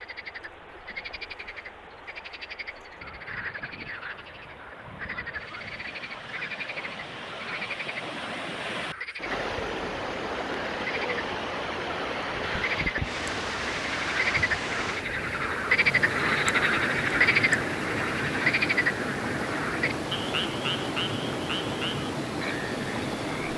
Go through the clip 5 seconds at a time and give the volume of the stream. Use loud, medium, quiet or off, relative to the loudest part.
quiet, medium, loud, loud, loud.